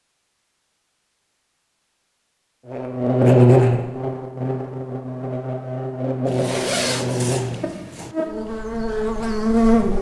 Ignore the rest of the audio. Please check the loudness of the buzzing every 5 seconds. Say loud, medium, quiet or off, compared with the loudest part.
loud, medium.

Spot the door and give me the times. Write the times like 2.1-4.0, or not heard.
not heard.